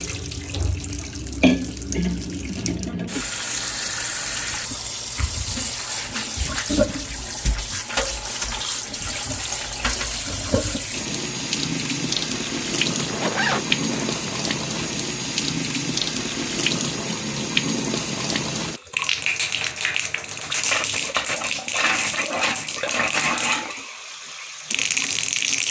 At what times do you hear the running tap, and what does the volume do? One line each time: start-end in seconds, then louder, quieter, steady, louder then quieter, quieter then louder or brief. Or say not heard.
0.0-25.6 steady.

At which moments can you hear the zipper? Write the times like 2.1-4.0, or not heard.
12.9-14.4.